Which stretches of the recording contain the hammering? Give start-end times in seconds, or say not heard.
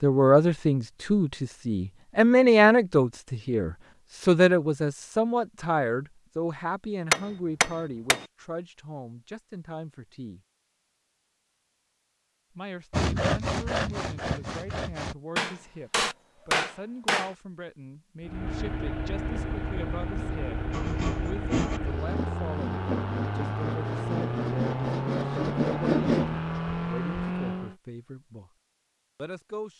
7.1-8.2, 15.3-17.4.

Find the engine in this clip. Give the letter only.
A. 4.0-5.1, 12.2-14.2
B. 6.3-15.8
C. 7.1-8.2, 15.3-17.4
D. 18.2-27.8
D.